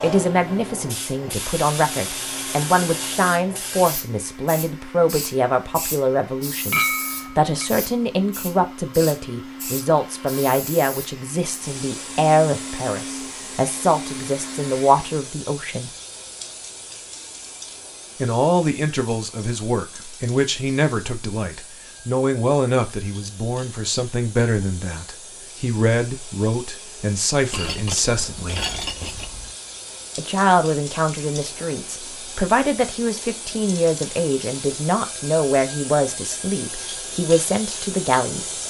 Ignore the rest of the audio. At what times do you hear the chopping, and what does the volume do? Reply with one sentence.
You can't hear the chopping here.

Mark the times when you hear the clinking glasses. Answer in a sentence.
You can hear the clinking glasses from 6.7 to 7.7 s and from 27.5 to 29.5 s.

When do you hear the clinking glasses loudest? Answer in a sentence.
The volume of the clinking glasses peaks at 7 seconds.